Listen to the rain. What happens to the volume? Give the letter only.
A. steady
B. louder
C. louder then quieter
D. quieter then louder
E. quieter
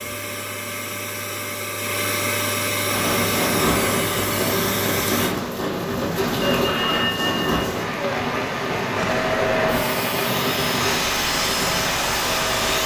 A.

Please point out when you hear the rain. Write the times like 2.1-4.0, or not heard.
2.8-12.8.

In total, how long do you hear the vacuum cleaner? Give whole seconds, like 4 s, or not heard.
9 s.